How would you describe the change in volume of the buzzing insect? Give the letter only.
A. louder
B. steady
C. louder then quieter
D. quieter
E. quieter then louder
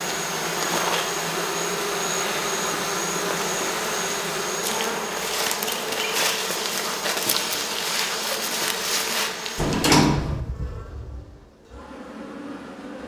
D.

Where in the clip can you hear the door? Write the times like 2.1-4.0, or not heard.
9.6-10.4.